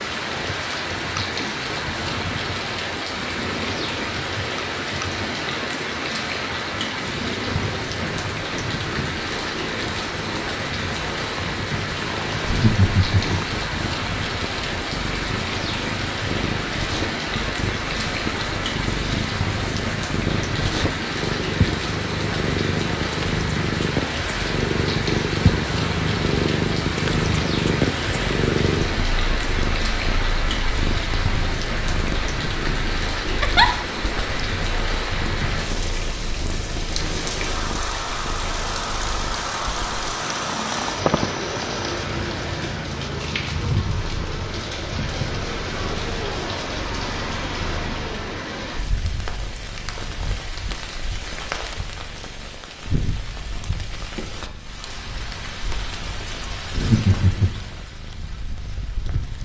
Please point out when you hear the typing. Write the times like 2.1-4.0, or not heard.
not heard.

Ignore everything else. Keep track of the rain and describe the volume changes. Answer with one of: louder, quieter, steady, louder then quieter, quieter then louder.
quieter.